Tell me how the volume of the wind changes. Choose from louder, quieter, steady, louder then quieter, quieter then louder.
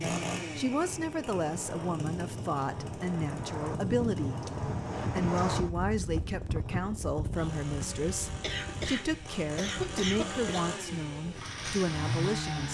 louder then quieter.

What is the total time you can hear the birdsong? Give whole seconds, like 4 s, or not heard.
not heard.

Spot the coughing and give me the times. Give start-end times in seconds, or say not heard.
8.2-10.8.